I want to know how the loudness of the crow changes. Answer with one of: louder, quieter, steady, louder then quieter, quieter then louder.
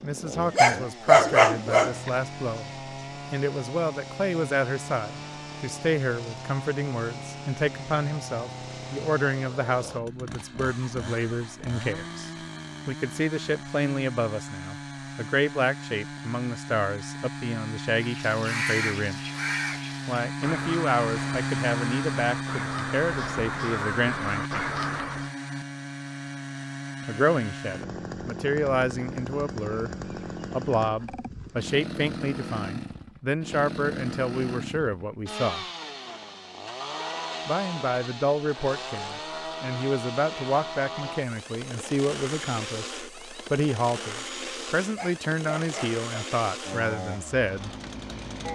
quieter then louder.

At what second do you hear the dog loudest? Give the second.
1 s.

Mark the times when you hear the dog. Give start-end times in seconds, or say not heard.
0.5-2.1, 44.9-46.4.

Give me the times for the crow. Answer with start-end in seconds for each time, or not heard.
17.9-25.3.